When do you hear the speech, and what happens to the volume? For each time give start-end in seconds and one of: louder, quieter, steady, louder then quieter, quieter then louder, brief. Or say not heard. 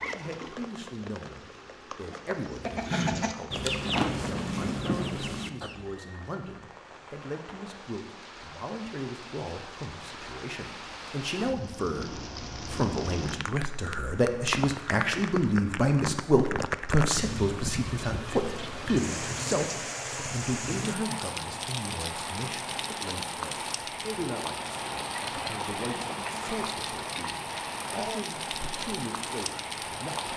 0.1-30.3 louder then quieter.